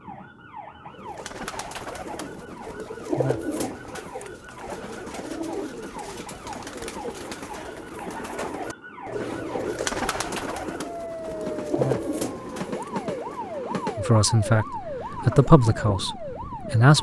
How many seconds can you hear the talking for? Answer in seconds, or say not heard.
3 s.